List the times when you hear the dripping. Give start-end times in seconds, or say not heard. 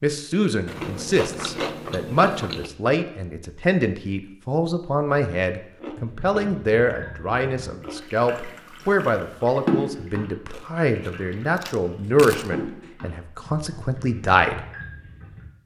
6.0-15.4.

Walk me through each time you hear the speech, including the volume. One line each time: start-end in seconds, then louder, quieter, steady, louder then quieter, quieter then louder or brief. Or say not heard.
0.0-14.6 steady.